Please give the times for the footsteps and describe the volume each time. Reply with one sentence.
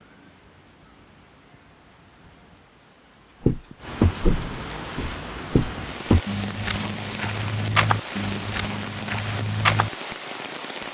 You can hear the footsteps from 3.5 to 9.9 s, getting quieter.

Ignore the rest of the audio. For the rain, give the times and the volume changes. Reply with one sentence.
You can hear the rain from 0.0 to 10.8 s, getting louder.